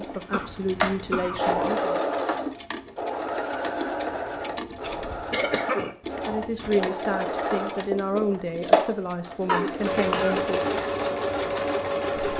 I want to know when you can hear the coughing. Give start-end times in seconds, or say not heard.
0.3-1.7, 4.8-6.7, 9.4-10.9.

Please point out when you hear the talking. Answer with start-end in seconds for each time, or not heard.
0.0-2.0, 6.2-10.8.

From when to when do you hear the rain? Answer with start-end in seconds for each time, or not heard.
not heard.